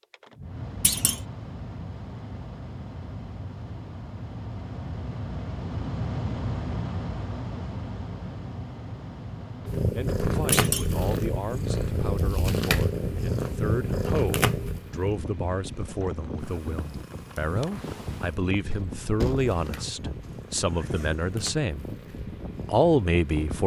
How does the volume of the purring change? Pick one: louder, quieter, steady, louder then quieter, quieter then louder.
quieter.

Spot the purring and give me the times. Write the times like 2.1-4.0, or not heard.
9.7-23.6.